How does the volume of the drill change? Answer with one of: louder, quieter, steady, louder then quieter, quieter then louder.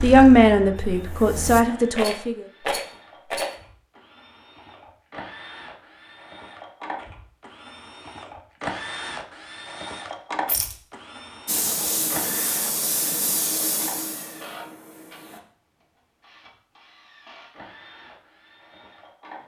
louder then quieter.